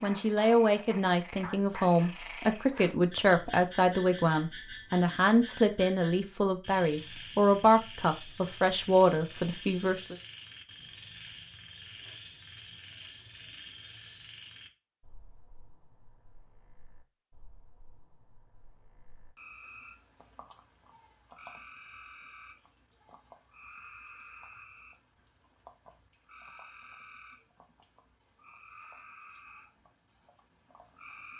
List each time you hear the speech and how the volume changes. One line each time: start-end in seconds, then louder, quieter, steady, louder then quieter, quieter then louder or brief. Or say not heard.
0.0-10.2 steady.